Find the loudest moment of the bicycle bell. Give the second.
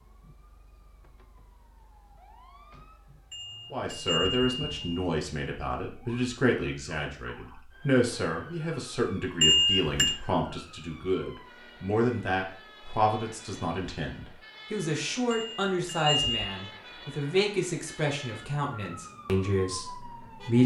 10 s.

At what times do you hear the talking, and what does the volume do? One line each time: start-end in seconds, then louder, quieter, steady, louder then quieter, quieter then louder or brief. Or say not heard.
3.7-20.6 steady.